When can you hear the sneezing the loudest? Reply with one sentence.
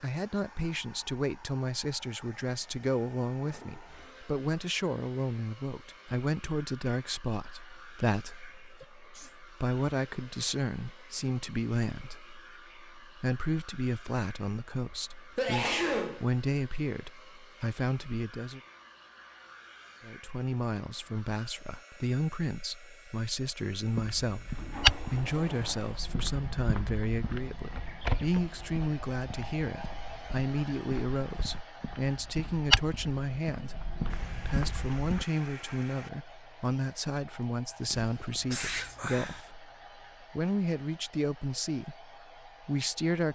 The volume of the sneezing peaks at 16 seconds.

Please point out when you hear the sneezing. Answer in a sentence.
The sneezing can be heard from 8.8 to 9.4 s, from 14.9 to 16.2 s and from 37.9 to 39.5 s.